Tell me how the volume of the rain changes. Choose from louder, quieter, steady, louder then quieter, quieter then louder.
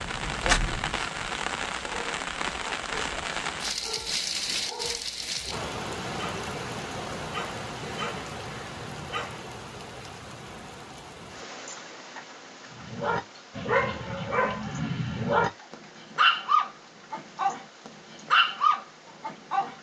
quieter.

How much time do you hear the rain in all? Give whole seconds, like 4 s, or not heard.
20 s.